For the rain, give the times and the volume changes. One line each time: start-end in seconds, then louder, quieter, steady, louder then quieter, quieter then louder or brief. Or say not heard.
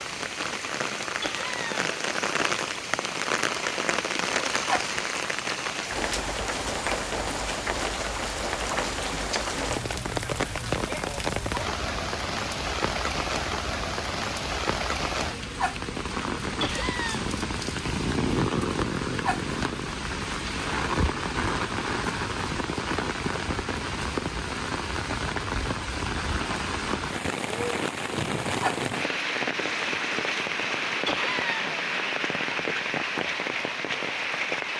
0.0-34.7 steady.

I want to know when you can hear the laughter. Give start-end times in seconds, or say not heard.
1.2-1.9, 16.6-17.2, 31.1-31.9.